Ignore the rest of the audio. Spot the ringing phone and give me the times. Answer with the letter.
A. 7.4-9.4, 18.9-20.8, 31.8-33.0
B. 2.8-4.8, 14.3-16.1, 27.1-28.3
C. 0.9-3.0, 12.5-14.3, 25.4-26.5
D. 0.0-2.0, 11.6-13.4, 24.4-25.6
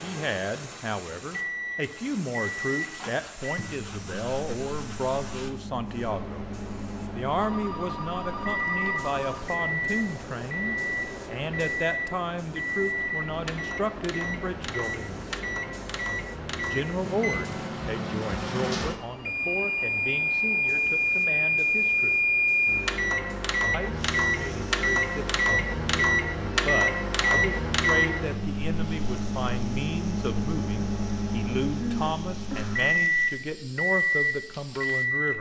A.